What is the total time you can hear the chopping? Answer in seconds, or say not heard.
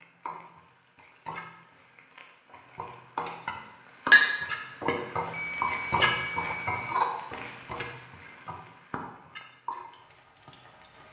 not heard.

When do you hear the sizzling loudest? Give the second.
7 s.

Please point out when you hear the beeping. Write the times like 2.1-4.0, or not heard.
5.3-7.2.